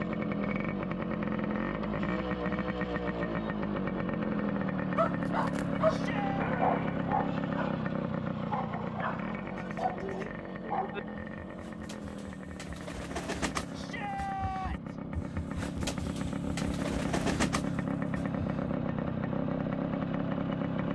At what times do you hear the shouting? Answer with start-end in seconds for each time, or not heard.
5.8-6.5, 13.7-14.9.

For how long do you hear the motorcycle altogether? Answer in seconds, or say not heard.
21 s.